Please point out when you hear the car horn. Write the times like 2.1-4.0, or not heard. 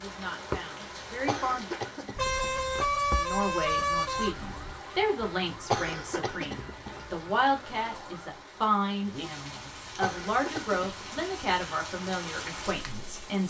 2.1-4.8.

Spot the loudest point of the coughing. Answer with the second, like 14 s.
6 s.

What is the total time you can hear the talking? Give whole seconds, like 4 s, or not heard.
12 s.